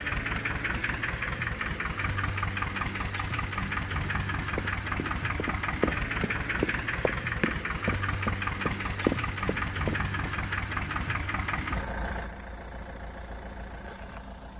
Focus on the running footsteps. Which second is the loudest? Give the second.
9 s.